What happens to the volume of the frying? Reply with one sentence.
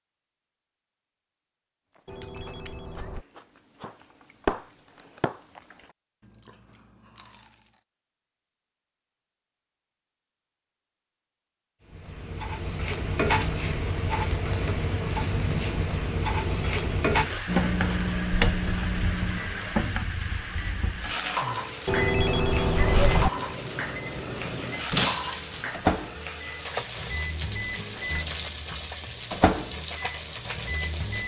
The volume of the frying goes down.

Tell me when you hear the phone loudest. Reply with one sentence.
The volume of the phone peaks at 22 seconds.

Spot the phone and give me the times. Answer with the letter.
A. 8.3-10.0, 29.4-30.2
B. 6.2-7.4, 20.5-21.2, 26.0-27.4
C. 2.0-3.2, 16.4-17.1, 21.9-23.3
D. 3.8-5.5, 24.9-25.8
C.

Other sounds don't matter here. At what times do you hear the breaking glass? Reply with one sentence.
You can hear the breaking glass from 3.8 to 5.5 s and from 24.9 to 25.8 s.